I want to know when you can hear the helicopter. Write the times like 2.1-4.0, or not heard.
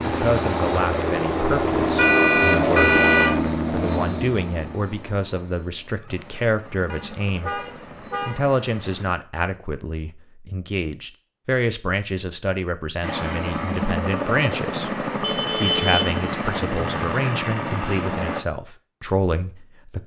0.0-9.2, 13.0-18.4.